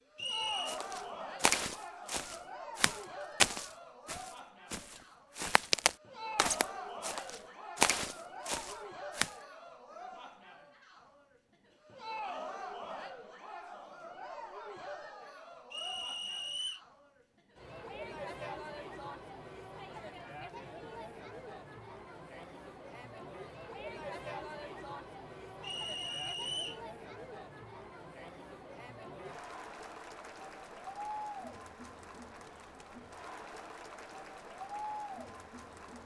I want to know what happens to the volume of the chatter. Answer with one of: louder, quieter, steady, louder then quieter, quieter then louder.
steady.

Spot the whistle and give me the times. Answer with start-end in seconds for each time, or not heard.
0.1-0.8, 15.7-16.8, 25.6-26.8.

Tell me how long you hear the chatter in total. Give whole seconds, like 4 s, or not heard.
36 s.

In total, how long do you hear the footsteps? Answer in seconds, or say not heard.
9 s.